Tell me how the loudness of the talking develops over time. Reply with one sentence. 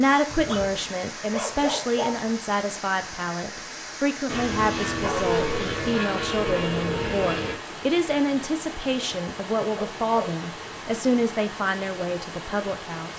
The volume of the talking stays about the same.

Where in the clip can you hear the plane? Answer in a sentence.
The plane can be heard from 4.2 to 7.5 s.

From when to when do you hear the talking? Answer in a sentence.
You can hear the talking from 0.0 to 13.1 s.